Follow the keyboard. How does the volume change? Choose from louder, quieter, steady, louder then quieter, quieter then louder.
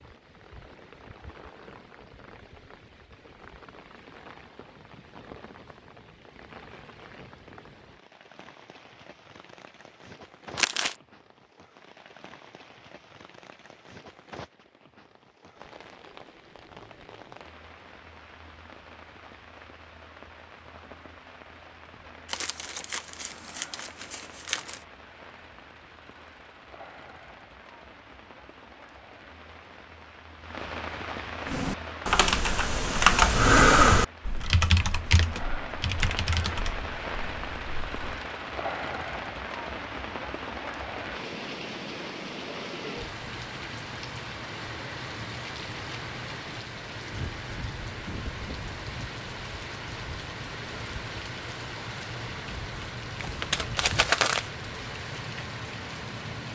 louder then quieter.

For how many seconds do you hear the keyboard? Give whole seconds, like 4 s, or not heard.
7 s.